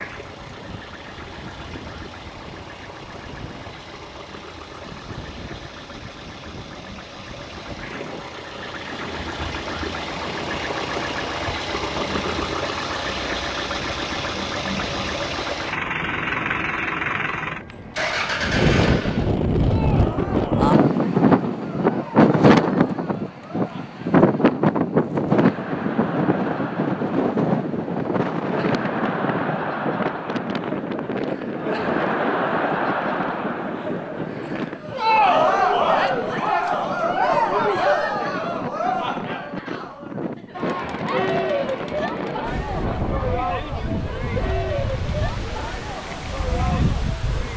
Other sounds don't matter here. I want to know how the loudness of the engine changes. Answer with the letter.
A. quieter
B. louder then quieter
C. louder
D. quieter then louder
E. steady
C.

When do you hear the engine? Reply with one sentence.
The engine can be heard from 0.0 to 19.4 s.